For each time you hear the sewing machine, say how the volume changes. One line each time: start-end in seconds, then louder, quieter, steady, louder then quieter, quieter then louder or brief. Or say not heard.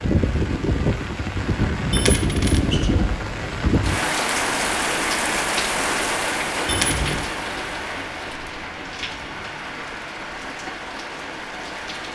not heard.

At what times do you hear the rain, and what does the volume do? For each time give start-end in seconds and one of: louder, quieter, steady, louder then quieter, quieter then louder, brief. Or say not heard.
0.0-12.1 quieter.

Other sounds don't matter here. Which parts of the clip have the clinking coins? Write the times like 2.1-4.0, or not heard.
1.9-3.8, 6.7-7.3.